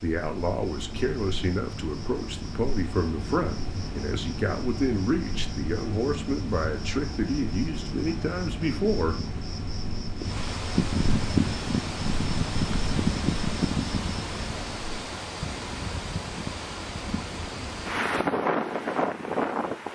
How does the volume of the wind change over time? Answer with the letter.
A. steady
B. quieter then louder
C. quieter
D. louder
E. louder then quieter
D.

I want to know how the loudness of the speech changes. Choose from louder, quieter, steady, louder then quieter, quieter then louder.
steady.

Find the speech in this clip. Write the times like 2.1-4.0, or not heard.
0.0-9.2.